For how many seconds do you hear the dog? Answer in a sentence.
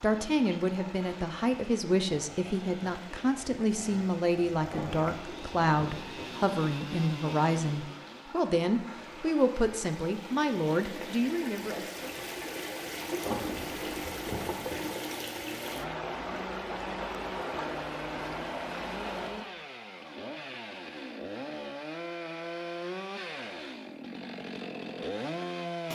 You can't hear the dog here.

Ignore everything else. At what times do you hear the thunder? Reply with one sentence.
You can hear the thunder from 4.7 to 6.5 s and from 13.2 to 15.0 s.